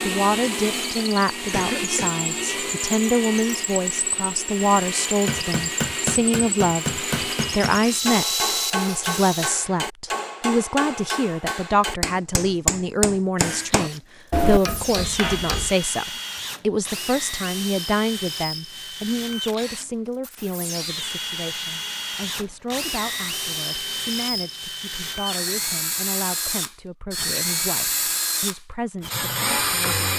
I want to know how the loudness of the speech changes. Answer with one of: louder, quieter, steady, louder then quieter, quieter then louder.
quieter.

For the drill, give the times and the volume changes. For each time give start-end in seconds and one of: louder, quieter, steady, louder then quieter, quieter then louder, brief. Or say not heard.
0.0-9.5 steady
13.3-30.1 louder.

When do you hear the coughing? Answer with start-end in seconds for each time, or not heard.
1.5-2.1.